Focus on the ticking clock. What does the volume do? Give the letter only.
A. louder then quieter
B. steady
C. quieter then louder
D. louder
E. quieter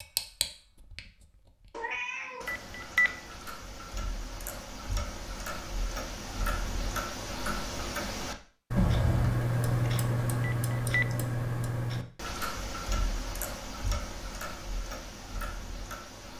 A.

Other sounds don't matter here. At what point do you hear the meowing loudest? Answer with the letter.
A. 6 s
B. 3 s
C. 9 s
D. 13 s
C.